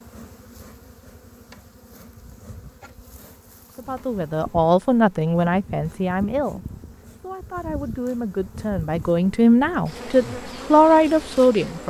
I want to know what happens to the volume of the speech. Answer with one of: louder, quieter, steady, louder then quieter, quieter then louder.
quieter then louder.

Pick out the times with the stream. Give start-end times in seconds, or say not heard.
not heard.